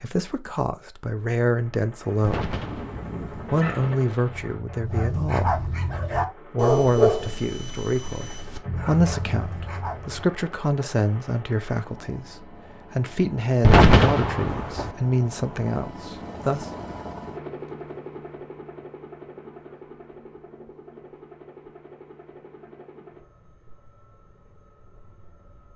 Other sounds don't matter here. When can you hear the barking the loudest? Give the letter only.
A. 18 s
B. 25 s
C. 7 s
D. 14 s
C.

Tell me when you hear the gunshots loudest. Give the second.
14 s.